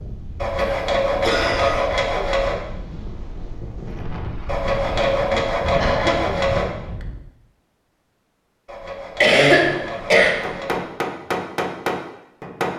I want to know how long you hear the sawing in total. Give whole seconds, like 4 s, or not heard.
7 s.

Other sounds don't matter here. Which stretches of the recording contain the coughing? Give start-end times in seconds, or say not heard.
0.6-1.8, 5.3-6.2, 9.2-10.5.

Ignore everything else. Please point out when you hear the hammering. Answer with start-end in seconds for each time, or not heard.
10.4-12.7.